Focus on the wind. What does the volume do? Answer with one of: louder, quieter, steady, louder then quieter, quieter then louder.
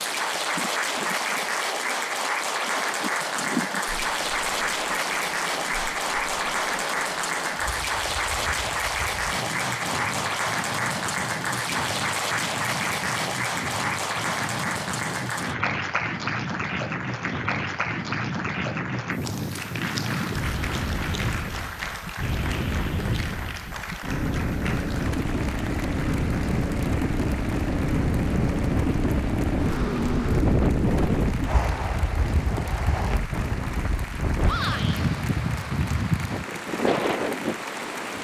louder.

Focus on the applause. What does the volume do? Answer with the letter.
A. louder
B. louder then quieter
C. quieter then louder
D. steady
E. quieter
E.